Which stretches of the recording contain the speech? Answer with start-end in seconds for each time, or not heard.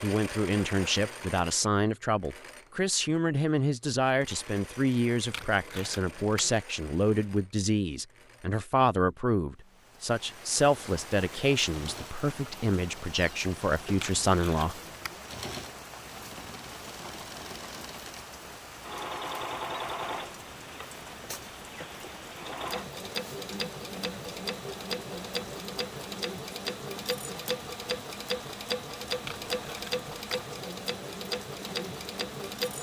0.0-14.8.